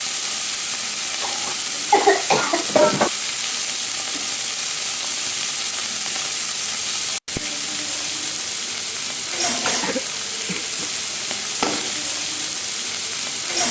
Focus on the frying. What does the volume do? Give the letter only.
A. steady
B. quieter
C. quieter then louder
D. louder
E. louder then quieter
A.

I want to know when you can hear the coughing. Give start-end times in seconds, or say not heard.
1.2-3.1, 9.6-10.9.